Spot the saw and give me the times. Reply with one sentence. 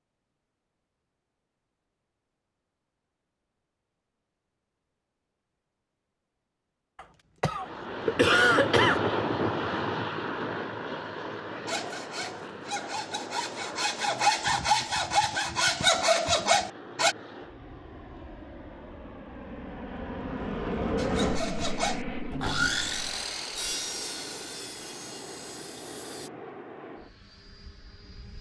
You can hear the saw from 11.7 to 17.1 s and from 20.9 to 26.3 s.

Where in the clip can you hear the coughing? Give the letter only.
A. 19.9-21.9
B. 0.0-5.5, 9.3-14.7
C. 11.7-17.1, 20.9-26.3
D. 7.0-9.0
D.